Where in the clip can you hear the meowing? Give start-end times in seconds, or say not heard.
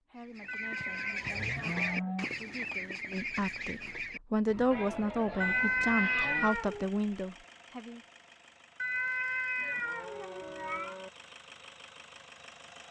0.5-1.2, 5.4-6.9, 8.8-10.9.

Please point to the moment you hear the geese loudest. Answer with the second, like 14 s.
2 s.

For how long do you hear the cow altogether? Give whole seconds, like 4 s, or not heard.
5 s.